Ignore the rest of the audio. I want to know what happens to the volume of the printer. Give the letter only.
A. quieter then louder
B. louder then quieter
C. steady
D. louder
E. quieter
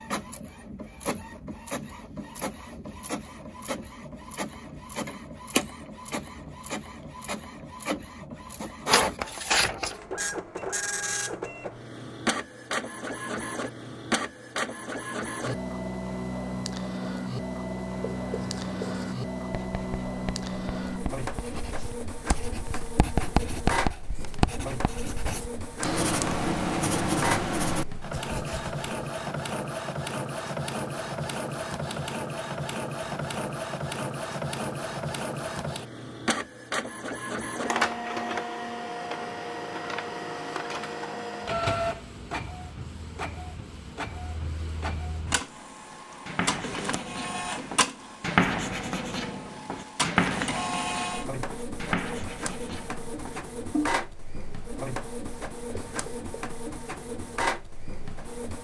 C.